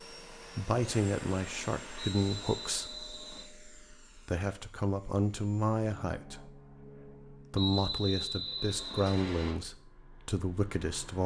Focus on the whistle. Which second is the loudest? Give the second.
8 s.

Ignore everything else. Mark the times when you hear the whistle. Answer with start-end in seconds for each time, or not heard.
1.9-3.5, 7.5-9.6.